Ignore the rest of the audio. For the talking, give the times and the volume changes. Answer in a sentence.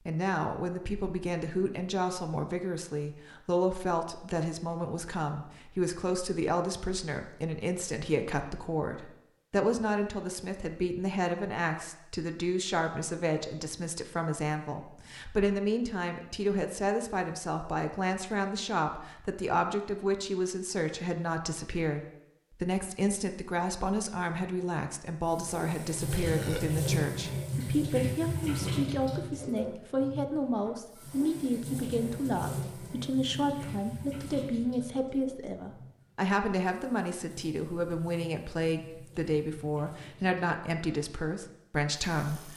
You can hear the talking from 0.1 to 42.5 s, at a steady volume.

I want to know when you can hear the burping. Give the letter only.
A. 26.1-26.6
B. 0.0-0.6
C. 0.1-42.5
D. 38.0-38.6
A.